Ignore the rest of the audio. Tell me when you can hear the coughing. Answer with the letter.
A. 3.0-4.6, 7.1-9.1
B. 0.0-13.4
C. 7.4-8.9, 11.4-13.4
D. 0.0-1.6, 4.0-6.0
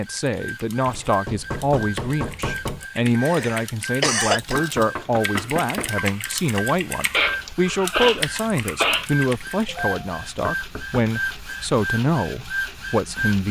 A.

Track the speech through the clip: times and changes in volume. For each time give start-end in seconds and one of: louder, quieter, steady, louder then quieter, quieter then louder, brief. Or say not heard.
0.0-13.4 steady.